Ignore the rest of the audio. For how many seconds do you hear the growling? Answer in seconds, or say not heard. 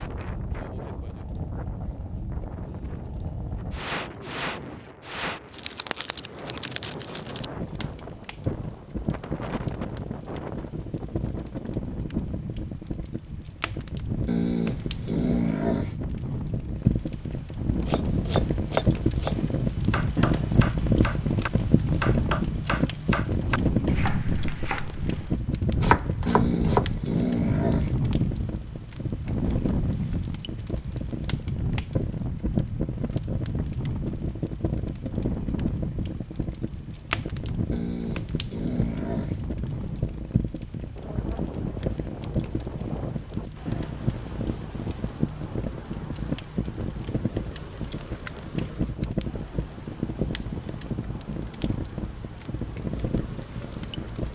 5 s.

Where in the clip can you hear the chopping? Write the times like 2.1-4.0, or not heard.
17.9-26.9.